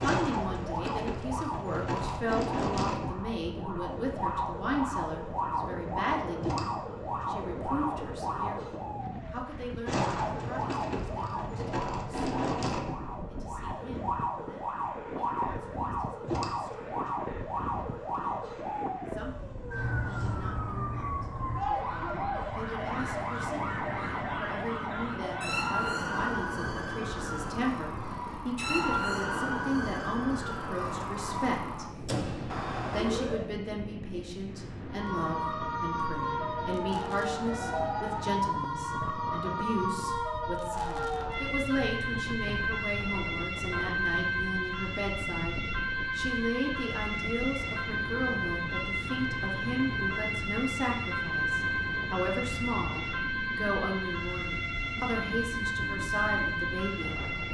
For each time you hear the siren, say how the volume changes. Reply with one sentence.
You can hear the siren from 0.0 to 33.5 s, at a steady volume; and from 34.9 to 57.4 s, at a steady volume.